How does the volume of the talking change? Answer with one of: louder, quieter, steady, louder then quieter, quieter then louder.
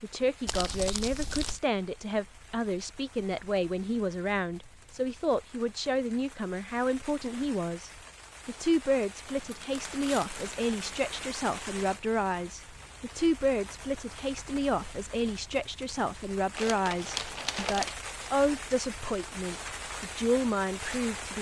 steady.